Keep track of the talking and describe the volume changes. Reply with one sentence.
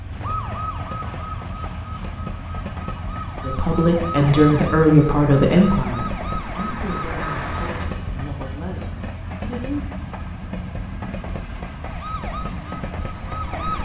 The volume of the talking goes down.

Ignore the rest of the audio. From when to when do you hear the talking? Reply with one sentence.
You can hear the talking from 3.5 to 9.9 s.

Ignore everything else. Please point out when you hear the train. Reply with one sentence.
The train can be heard from 0.0 to 13.7 s.